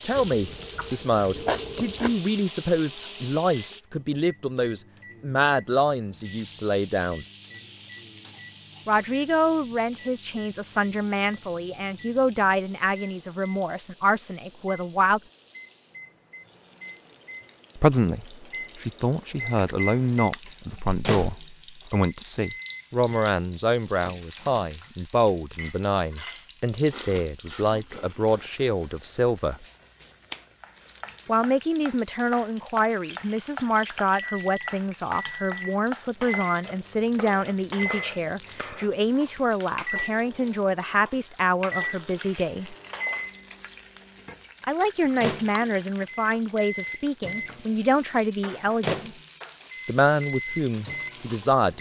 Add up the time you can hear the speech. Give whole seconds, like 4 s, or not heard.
43 s.